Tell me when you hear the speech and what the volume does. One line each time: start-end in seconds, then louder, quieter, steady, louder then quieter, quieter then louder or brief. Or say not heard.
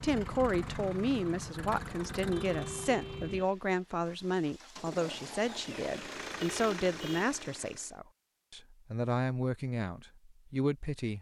0.0-11.1 steady.